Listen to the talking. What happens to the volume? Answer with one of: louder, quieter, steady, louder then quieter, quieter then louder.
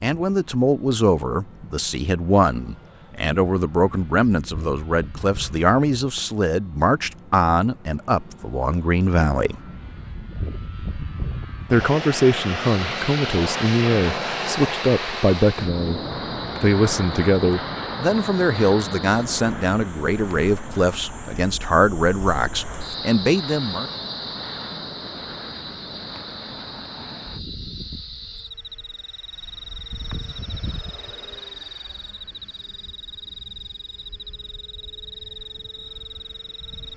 steady.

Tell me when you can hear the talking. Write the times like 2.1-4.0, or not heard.
0.0-9.6, 11.7-16.0, 16.6-23.9.